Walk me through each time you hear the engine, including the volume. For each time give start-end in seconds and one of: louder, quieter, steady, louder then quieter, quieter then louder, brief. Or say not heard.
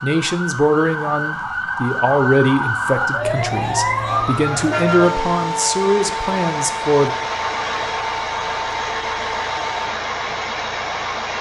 4.0-11.3 louder.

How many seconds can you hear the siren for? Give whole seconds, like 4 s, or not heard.
10 s.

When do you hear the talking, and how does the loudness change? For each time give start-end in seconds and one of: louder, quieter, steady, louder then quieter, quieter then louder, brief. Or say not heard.
0.0-7.2 quieter then louder.